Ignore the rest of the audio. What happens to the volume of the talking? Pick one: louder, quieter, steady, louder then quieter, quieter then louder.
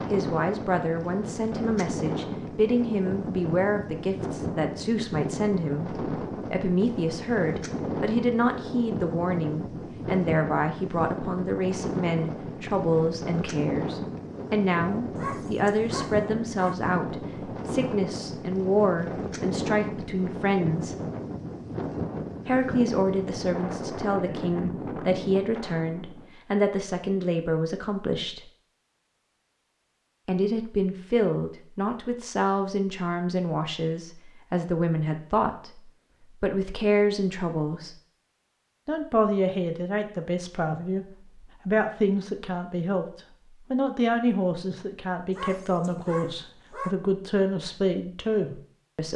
steady.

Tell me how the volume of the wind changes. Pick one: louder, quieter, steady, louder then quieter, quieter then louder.
steady.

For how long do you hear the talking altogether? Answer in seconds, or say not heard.
45 s.